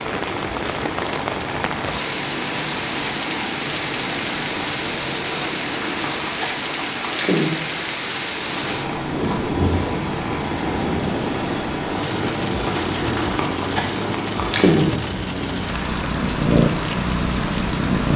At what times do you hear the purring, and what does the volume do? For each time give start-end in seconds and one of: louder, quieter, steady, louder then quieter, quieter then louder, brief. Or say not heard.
0.0-18.1 louder.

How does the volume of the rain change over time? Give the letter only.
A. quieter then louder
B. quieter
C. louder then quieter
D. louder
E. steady
E.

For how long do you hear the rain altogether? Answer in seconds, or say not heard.
18 s.